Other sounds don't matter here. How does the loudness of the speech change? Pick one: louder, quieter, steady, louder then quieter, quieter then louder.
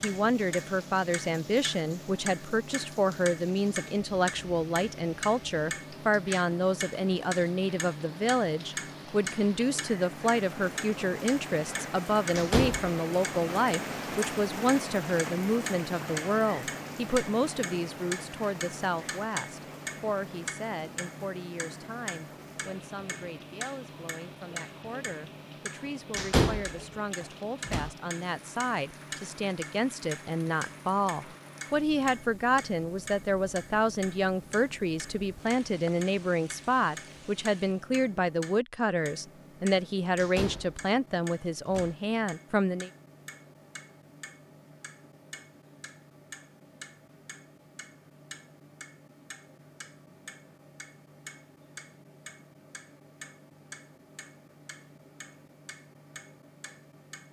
quieter then louder.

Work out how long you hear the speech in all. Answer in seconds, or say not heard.
43 s.